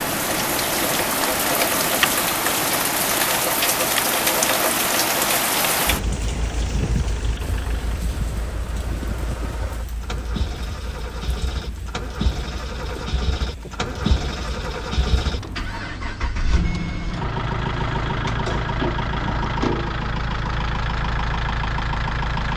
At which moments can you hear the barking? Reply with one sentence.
You can't hear the barking here.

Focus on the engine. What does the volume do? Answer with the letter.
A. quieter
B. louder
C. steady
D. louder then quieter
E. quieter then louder
B.